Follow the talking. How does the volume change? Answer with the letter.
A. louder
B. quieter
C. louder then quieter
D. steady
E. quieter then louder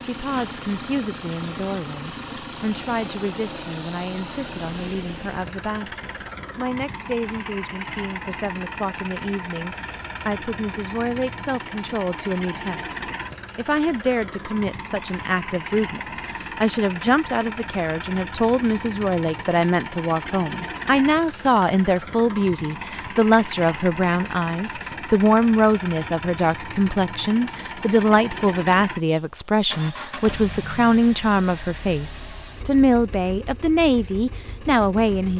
A.